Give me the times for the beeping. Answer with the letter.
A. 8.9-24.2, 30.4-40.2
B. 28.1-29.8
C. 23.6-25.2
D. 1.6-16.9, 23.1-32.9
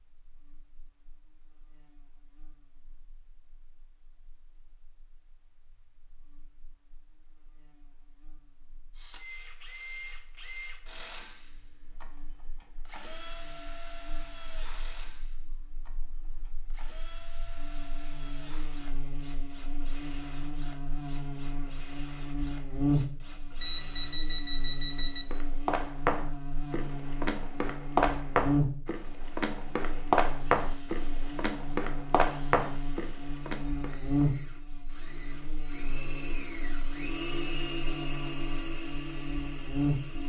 C.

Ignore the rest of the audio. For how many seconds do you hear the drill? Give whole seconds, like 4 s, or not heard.
25 s.